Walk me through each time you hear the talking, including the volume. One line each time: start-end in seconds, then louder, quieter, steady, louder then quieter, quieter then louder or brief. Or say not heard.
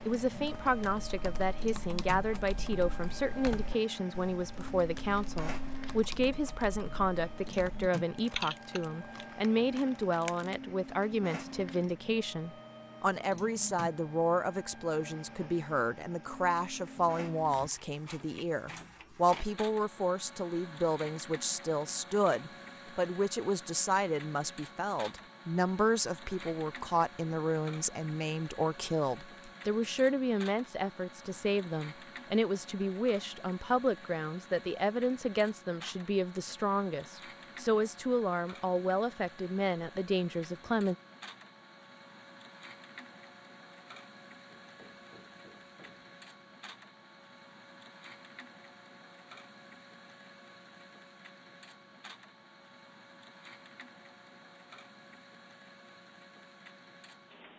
0.1-41.0 steady.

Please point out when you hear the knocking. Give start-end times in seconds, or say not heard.
44.8-46.1.